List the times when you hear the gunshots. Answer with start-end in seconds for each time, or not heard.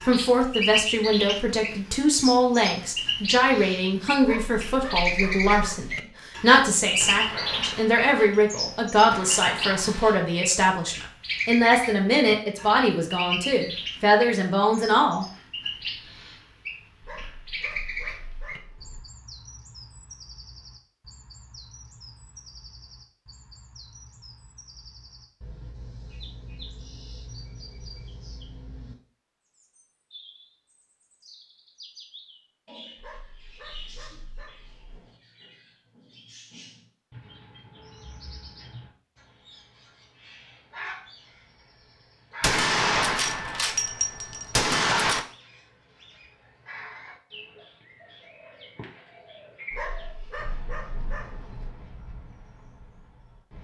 7.0-10.2, 42.4-45.2.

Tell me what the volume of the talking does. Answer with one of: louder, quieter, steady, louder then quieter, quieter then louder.
steady.